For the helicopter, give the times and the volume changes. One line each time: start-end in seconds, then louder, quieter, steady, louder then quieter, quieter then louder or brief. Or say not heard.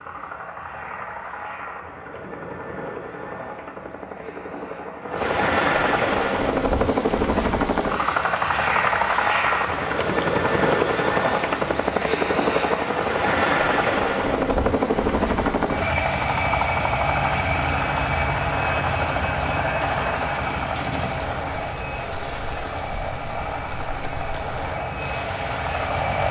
0.0-26.2 louder then quieter.